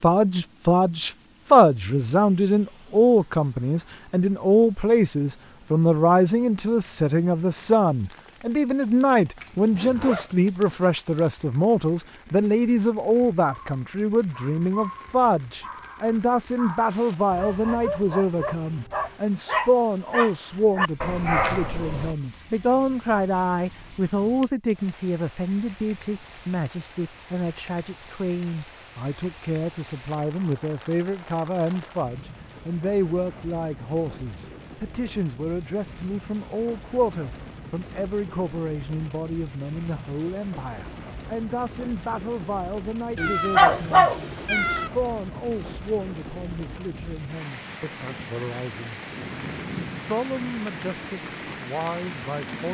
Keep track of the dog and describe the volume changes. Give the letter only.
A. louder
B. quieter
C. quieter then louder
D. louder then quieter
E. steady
A.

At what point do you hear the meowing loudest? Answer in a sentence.
The loudest moment of the meowing is at 44 seconds.